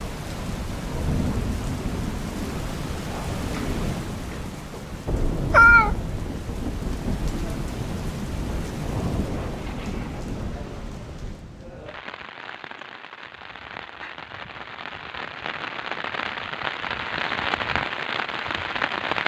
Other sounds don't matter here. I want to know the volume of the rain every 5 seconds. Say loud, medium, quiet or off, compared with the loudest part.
loud, loud, medium, loud.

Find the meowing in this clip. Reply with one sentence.
The meowing can be heard from 5.5 to 6.4 s.